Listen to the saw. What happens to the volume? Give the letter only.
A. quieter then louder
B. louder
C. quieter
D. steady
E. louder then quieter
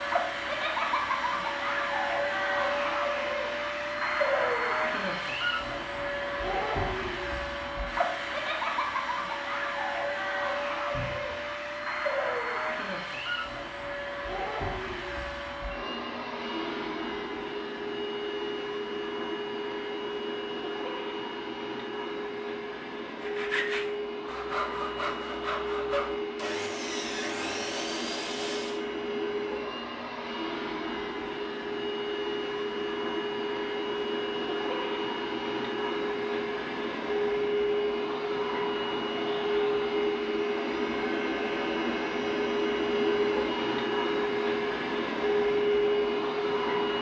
D.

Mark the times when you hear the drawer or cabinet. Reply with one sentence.
The drawer or cabinet can be heard from 10.9 to 11.4 s.